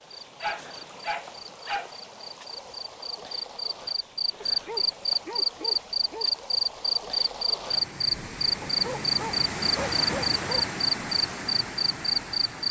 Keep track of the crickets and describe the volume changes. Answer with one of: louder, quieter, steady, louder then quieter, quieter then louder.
louder.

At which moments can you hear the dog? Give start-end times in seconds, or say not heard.
0.4-1.9, 4.4-6.3, 8.7-10.7.